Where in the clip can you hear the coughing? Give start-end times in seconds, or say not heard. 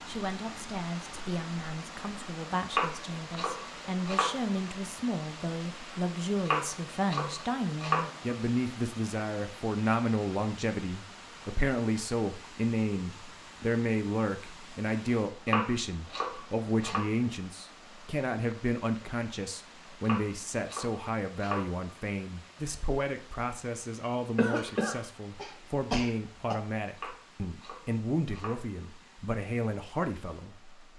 24.4-26.6.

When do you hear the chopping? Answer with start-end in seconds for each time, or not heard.
2.7-4.6, 6.5-8.3, 15.4-17.0, 20.1-21.9, 26.9-28.6.